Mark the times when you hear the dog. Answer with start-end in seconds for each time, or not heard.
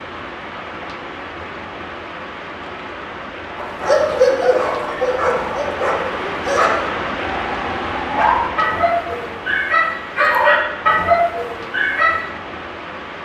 3.5-12.2.